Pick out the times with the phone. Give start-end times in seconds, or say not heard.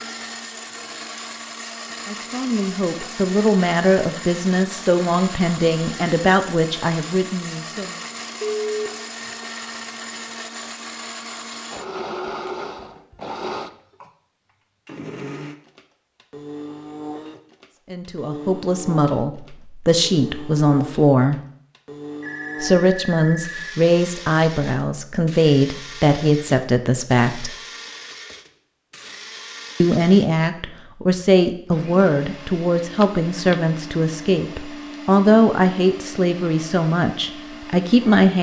8.4-9.3, 22.2-23.8, 33.0-33.5.